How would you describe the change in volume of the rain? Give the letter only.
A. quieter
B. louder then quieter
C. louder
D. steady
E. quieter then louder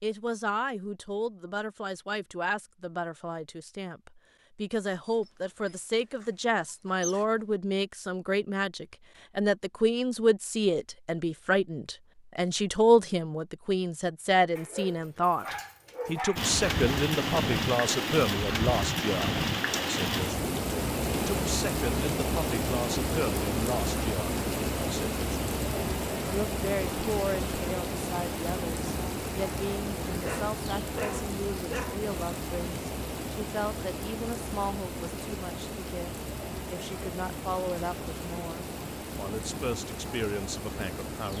A.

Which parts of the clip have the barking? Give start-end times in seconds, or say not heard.
5.0-7.2, 14.6-16.5, 30.2-32.0.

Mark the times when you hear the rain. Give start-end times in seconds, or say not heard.
16.4-41.3.